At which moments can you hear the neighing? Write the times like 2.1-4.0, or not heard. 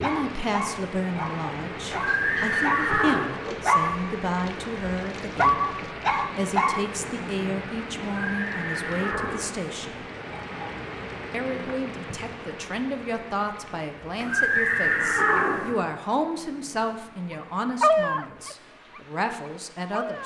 1.9-3.2, 8.2-9.6, 14.2-15.7.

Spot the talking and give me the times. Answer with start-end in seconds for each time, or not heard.
0.0-9.9, 11.3-20.2.